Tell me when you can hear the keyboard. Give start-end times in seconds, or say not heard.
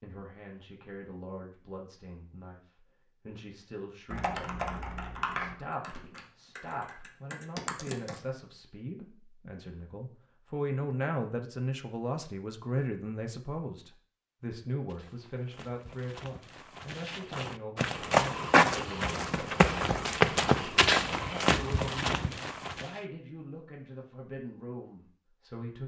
4.1-8.2.